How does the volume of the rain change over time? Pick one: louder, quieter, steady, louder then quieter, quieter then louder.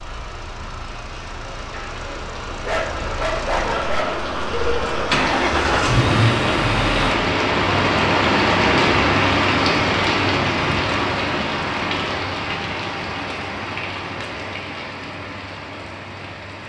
louder then quieter.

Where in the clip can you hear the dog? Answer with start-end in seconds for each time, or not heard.
2.5-4.1.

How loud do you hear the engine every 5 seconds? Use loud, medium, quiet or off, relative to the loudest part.
quiet, loud, off, off.